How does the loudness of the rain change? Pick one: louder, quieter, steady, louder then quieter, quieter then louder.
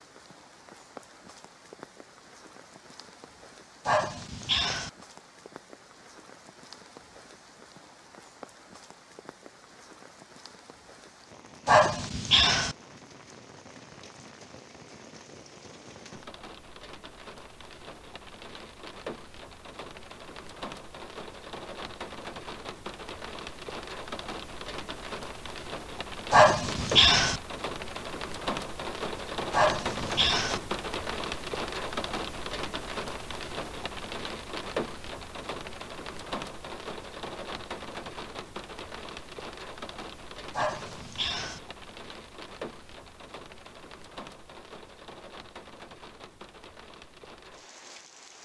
louder then quieter.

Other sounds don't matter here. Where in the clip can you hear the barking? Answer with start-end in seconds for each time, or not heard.
3.9-4.9, 11.7-12.8, 26.3-27.4, 29.5-30.6, 40.5-41.6.